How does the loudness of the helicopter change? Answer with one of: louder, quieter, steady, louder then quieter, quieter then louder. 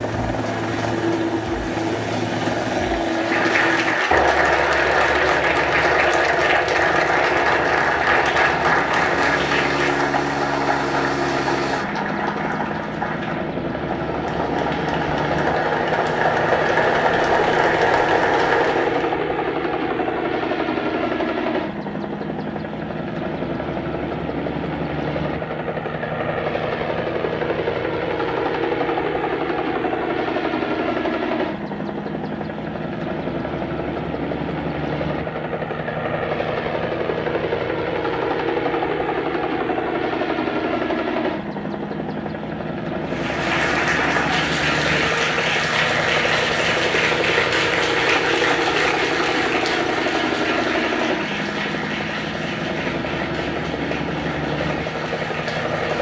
steady.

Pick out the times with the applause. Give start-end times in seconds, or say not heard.
3.0-19.1, 43.0-55.9.